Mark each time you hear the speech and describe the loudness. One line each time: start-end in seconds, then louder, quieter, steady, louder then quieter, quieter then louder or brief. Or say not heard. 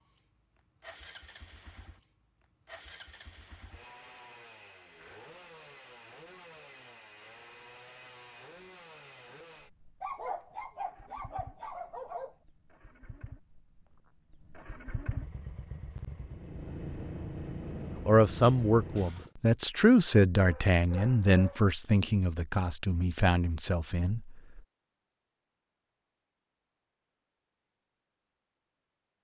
18.1-24.6 quieter.